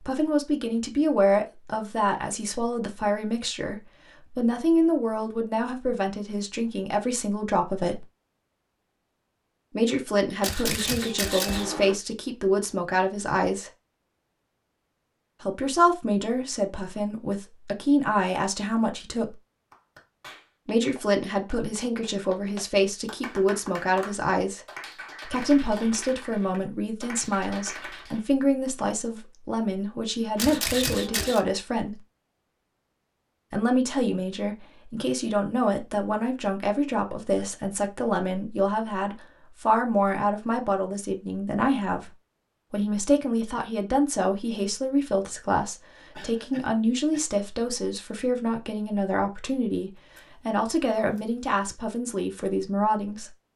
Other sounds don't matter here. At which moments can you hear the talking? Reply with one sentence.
You can hear the talking from 0.0 to 8.1 s, from 9.7 to 13.7 s, from 15.4 to 19.4 s, from 20.6 to 24.6 s, from 25.2 to 32.0 s and from 33.5 to 53.3 s.